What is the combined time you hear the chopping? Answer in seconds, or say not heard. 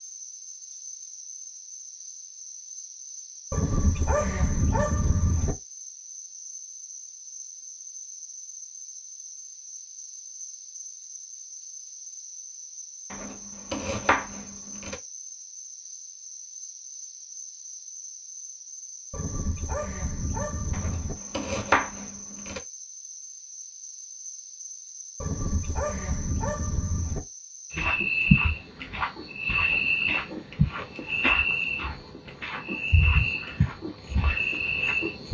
4 s.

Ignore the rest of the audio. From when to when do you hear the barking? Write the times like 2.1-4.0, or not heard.
3.5-5.5, 19.1-21.1, 25.2-27.2.